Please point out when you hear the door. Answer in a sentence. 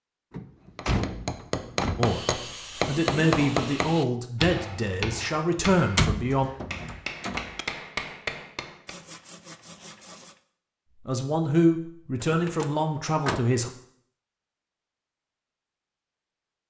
You can hear the door from 0.3 to 2.1 s, from 5.8 to 7.7 s and from 12.2 to 13.4 s.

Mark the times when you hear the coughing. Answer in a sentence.
You can't hear the coughing here.